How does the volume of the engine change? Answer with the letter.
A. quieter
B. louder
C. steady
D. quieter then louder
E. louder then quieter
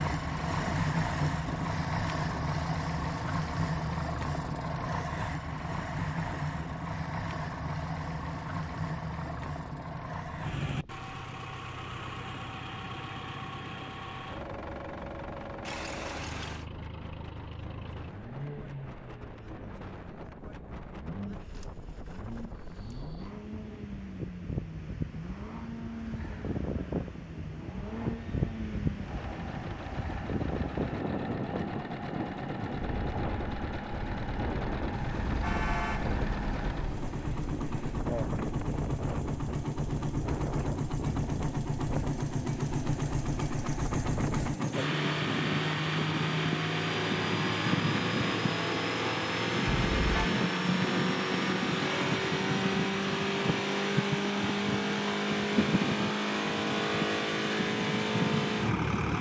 D.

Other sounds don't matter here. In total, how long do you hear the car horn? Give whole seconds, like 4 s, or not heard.
4 s.